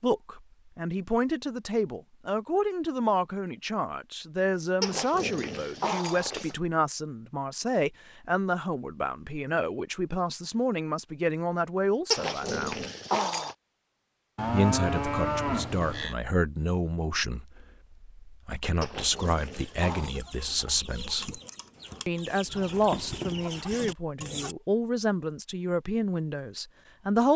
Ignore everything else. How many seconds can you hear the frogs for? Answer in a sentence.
The frogs can't be heard in this clip.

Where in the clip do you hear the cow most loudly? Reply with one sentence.
The volume of the cow peaks at 15 seconds.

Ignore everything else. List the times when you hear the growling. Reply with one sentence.
The growling can be heard from 4.8 to 6.5 s, from 12.1 to 13.6 s and from 18.8 to 20.1 s.